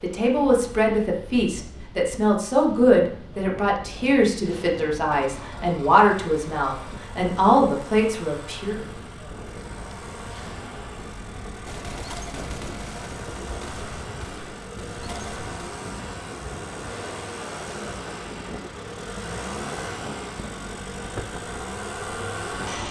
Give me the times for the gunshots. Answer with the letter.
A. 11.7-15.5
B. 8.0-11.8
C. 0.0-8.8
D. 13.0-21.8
A.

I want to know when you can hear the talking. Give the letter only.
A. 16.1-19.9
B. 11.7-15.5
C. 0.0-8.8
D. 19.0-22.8
C.